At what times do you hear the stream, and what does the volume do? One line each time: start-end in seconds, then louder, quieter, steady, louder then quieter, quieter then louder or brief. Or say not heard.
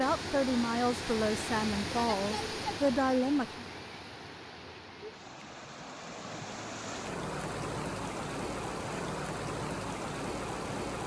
0.0-11.0 quieter then louder.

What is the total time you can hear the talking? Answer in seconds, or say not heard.
4 s.